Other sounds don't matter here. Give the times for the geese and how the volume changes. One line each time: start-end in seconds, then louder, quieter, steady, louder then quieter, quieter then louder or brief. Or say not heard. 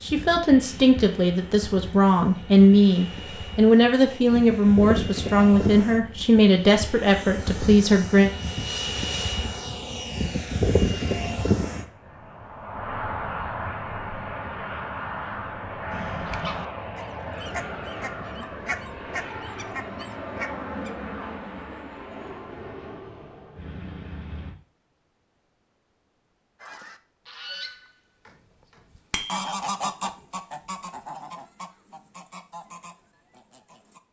15.9-20.9 steady
26.6-34.0 louder then quieter.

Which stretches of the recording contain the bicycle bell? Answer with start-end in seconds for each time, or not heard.
29.1-29.6.